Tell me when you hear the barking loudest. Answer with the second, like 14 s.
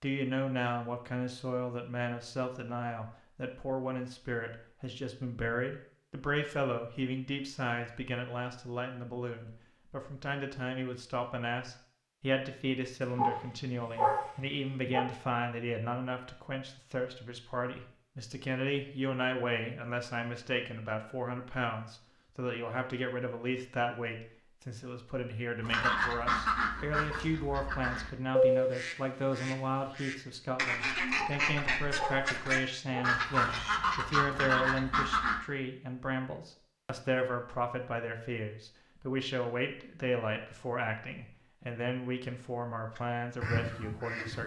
14 s.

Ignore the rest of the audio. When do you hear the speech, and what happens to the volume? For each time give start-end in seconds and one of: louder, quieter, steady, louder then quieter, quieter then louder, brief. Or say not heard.
0.0-44.4 steady.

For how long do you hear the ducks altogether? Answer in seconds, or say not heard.
11 s.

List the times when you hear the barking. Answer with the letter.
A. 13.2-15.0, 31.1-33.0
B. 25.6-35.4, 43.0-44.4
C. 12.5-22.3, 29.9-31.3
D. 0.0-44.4
A.